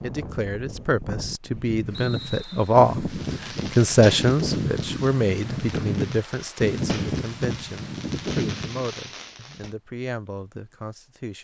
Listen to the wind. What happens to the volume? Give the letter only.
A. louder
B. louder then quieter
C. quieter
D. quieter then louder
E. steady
A.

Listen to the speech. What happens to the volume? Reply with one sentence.
The loudness of the speech goes up, then down.